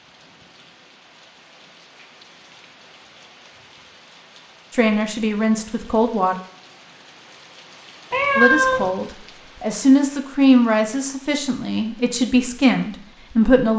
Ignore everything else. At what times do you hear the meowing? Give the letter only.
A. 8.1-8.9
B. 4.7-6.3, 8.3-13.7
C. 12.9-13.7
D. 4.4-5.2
A.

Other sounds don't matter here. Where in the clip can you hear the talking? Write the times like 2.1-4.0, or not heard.
4.7-6.3, 8.3-13.7.